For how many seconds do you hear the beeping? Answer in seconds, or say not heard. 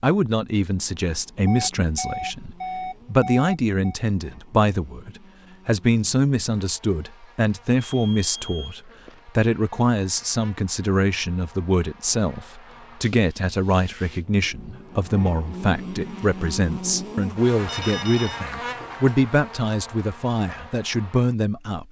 4 s.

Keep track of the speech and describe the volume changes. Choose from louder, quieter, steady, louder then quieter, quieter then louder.
steady.